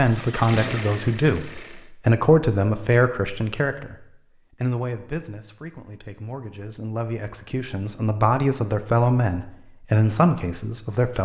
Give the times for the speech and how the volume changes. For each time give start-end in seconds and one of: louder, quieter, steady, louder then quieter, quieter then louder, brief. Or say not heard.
0.0-11.2 quieter then louder.